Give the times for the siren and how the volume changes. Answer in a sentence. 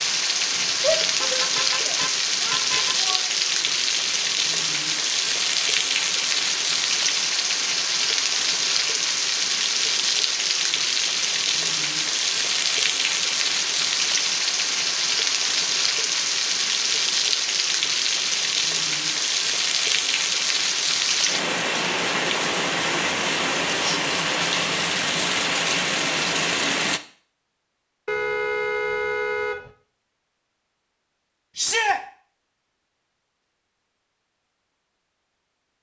You can't hear the siren here.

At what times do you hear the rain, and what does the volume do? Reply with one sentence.
You can hear the rain from 0.0 to 27.0 s, at a steady volume.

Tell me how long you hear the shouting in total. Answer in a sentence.
The shouting can be heard for 3 seconds in total.